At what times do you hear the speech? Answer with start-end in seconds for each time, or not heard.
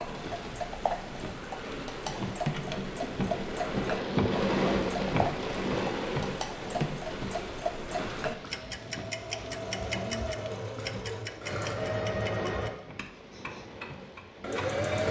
not heard.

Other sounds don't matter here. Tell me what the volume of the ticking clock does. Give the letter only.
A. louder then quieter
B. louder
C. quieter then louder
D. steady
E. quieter
E.